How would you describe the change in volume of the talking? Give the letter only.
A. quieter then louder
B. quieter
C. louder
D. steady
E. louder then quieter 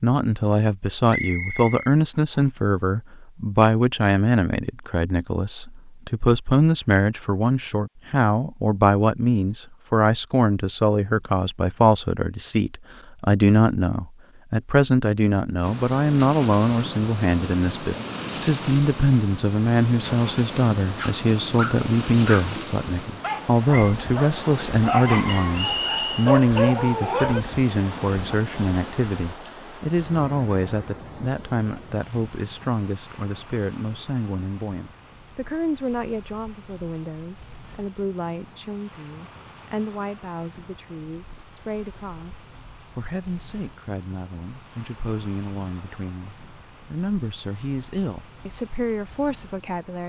B.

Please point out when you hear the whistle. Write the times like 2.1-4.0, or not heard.
1.1-2.5, 25.5-26.3.